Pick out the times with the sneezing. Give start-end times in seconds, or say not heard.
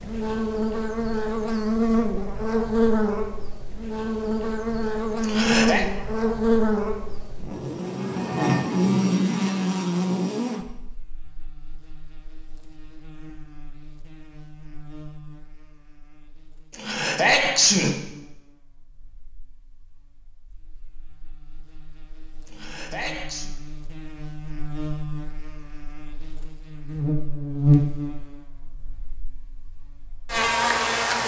5.2-5.8, 16.7-17.9, 22.4-23.5.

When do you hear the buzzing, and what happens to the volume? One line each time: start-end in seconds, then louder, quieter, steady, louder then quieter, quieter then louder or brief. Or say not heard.
0.0-31.2 quieter then louder.